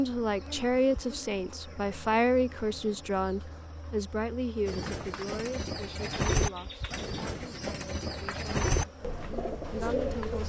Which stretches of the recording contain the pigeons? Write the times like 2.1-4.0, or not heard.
4.7-10.4.